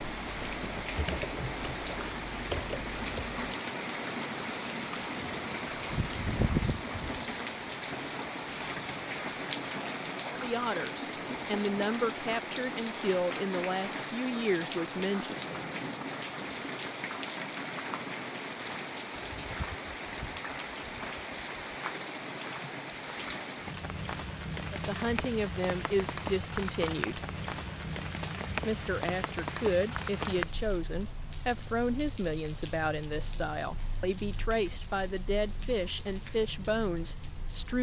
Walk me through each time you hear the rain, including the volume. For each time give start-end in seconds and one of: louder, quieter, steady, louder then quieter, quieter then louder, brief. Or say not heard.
0.0-37.7 quieter.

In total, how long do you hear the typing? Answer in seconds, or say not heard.
3 s.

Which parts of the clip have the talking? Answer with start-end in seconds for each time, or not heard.
10.3-15.4, 24.7-27.2, 28.6-37.7.